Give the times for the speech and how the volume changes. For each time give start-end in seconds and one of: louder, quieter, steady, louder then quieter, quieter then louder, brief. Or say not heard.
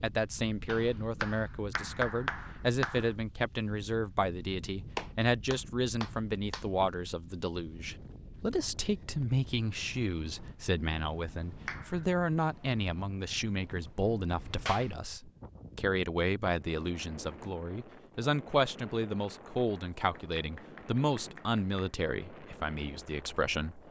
0.0-23.8 steady.